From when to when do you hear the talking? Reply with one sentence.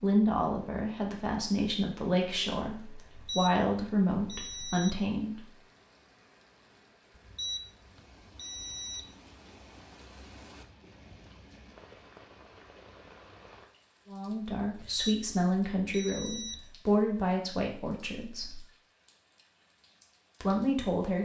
The talking can be heard from 0.0 to 5.4 s, from 14.1 to 18.6 s and from 20.4 to 21.2 s.